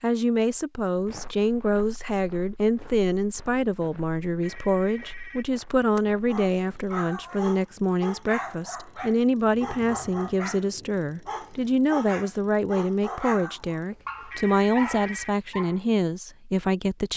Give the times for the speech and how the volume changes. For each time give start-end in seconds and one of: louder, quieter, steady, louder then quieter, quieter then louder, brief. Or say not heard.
0.0-17.1 steady.